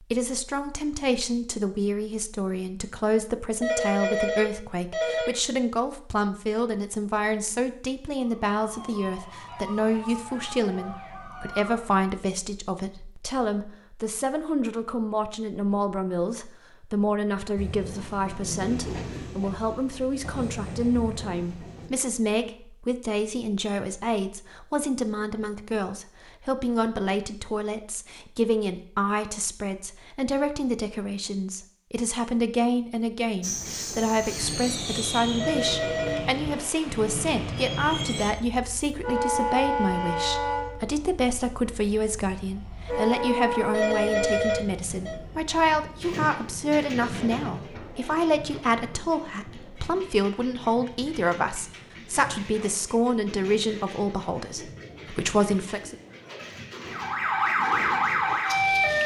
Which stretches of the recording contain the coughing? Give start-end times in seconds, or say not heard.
not heard.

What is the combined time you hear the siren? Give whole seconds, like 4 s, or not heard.
6 s.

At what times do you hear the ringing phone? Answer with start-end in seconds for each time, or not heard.
3.6-5.4, 35.4-36.2, 43.7-45.2.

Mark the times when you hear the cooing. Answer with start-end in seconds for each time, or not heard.
not heard.